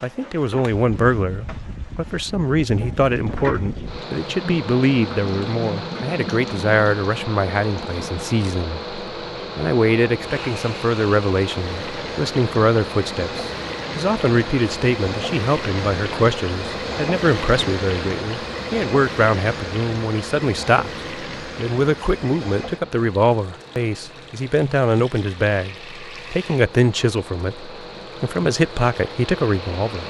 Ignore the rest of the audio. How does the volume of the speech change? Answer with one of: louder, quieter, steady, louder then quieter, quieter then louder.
steady.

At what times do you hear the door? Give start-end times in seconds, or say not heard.
not heard.